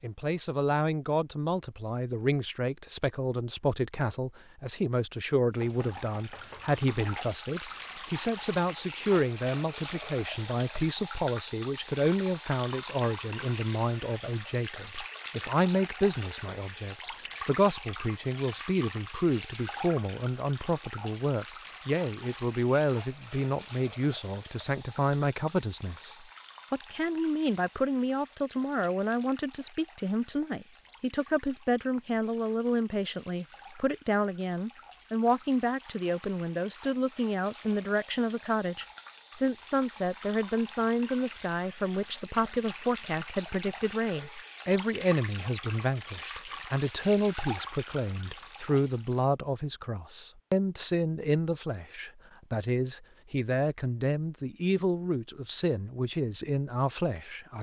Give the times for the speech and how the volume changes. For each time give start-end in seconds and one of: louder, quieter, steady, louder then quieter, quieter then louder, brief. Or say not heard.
0.0-57.5 steady.